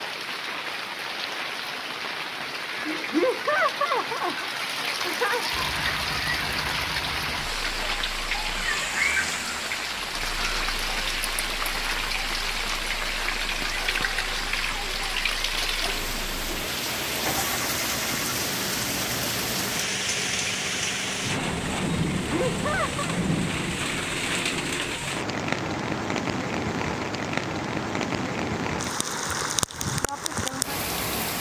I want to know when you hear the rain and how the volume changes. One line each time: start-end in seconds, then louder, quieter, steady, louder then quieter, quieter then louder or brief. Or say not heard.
0.0-31.3 steady.